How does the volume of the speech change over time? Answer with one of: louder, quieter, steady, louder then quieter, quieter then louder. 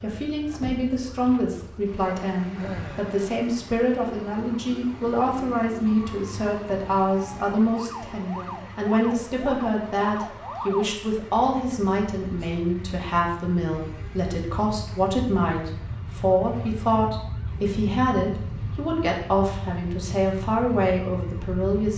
steady.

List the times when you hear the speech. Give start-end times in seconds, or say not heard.
0.0-21.9.